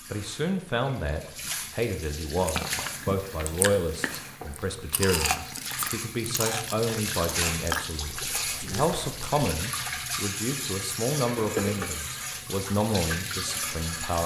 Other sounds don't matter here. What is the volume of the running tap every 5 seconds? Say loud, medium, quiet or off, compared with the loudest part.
medium, loud, loud.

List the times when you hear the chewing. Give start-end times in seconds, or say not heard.
2.4-9.4.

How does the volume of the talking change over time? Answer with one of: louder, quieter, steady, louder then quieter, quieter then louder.
steady.